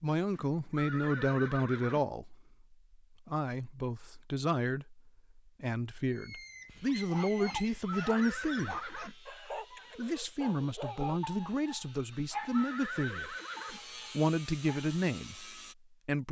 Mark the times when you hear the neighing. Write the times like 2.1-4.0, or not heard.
0.3-2.0, 7.5-9.2, 12.1-13.8.